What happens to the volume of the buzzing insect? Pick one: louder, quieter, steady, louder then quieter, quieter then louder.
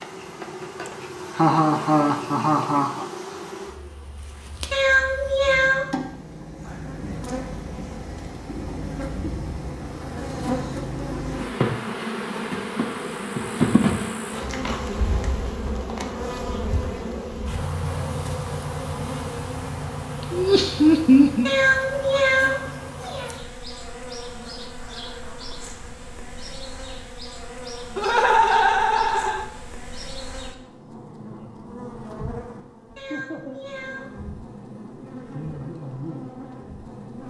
louder then quieter.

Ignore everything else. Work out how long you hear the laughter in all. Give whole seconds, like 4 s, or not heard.
5 s.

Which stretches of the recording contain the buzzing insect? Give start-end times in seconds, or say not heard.
0.0-37.2.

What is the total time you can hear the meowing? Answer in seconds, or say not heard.
4 s.